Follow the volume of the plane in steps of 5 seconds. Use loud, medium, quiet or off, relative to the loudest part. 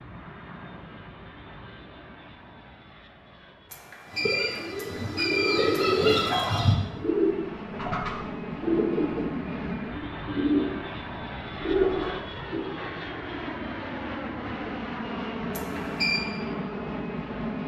quiet, loud, loud, loud.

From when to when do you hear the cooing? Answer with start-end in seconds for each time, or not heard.
4.1-12.7.